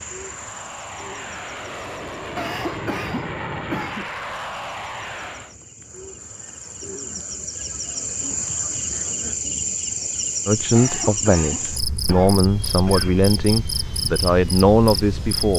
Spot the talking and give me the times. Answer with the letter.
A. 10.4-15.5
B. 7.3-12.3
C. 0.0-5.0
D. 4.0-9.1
A.